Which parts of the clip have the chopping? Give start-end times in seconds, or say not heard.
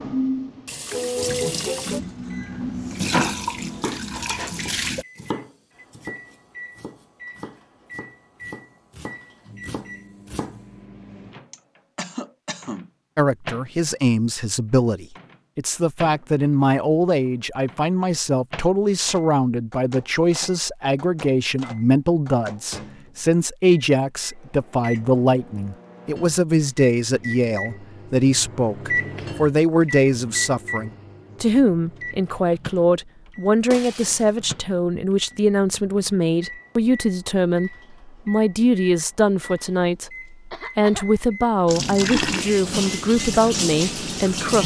3.6-10.6.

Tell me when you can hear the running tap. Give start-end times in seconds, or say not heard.
0.0-5.0, 41.6-44.6.